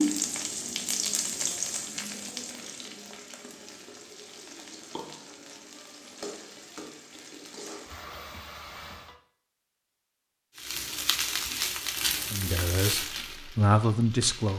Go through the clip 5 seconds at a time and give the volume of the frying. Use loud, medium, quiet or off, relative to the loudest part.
loud, medium, loud.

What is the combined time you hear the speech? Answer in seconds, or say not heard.
2 s.